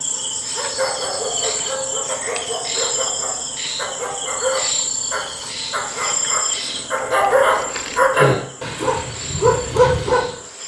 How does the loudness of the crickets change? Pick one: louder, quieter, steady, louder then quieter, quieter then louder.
quieter.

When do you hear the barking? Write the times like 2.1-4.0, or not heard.
0.5-10.3.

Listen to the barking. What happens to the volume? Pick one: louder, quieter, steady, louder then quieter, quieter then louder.
louder.